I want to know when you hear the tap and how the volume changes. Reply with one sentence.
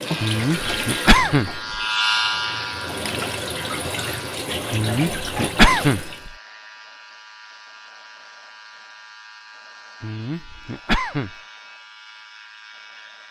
The tap can be heard from 0.0 to 6.3 s, getting quieter then louder.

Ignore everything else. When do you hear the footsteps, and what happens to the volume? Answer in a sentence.
You can't hear the footsteps here.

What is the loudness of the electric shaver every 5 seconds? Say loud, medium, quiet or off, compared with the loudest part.
loud, quiet, quiet.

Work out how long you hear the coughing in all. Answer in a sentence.
You can hear the coughing for 4 seconds altogether.